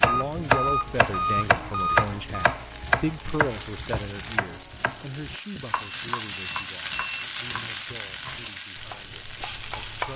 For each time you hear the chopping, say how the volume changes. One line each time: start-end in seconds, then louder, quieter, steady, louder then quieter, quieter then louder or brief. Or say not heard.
0.0-10.1 quieter.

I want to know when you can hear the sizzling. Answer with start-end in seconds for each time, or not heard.
0.0-10.1.